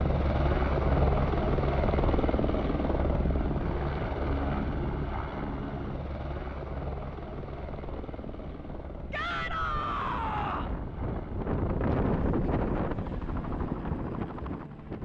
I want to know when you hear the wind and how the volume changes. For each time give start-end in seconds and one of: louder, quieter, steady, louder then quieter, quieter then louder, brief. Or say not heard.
7.3-15.0 louder then quieter.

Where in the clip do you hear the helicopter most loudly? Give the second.
1 s.